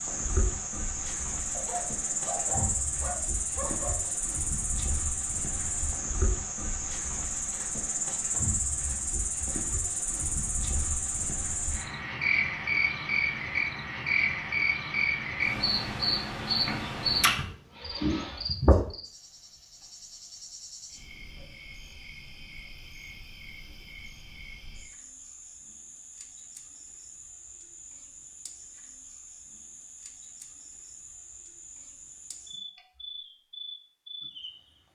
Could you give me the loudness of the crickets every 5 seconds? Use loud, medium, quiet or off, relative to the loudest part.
loud, loud, loud, loud, quiet, quiet, quiet.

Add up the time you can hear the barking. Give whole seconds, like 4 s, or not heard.
3 s.